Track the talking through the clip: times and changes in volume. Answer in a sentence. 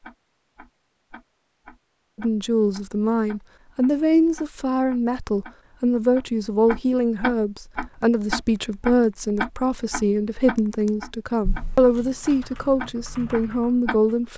The talking can be heard from 2.1 to 14.3 s, at a steady volume.